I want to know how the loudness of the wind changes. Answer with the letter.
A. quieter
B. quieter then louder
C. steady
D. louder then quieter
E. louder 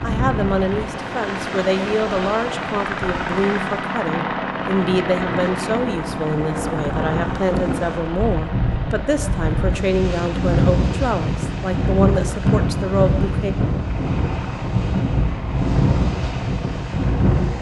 E.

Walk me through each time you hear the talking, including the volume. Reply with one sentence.
The talking can be heard from 0.0 to 13.6 s, at a steady volume.